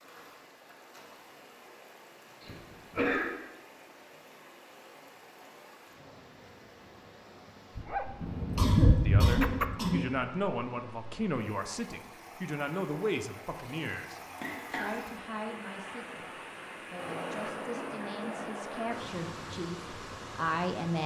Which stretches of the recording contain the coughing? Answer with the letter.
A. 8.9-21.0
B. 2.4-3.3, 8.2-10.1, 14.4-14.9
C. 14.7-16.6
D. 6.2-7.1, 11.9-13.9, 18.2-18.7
B.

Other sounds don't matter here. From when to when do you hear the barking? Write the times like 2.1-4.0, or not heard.
7.8-9.7.